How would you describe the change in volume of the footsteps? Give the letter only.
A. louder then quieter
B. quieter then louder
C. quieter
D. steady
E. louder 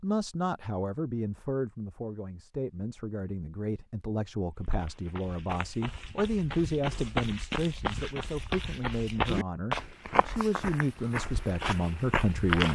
E.